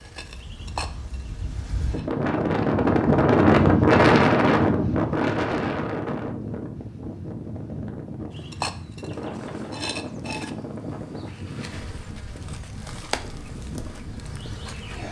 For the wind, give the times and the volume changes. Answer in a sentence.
You can hear the wind from 0.0 to 15.0 s, getting louder then quieter.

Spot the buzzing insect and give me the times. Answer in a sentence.
The buzzing insect can be heard from 0.0 to 2.0 s and from 8.3 to 15.0 s.